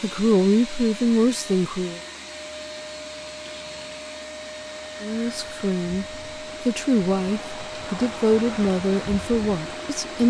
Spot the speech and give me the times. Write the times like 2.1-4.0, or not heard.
0.0-2.0, 5.0-10.2.